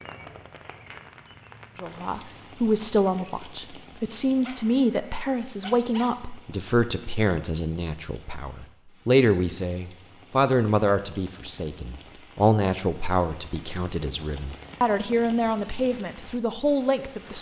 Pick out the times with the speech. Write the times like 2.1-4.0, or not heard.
1.8-17.3.